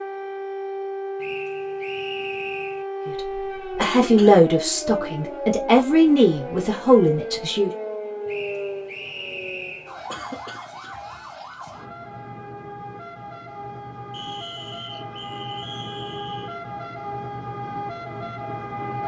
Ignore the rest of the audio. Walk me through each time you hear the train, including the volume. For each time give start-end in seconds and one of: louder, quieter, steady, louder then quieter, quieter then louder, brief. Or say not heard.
not heard.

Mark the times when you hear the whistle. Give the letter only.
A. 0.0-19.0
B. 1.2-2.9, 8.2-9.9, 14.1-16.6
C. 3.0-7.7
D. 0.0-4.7
B.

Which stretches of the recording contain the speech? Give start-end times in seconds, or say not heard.
3.0-7.7.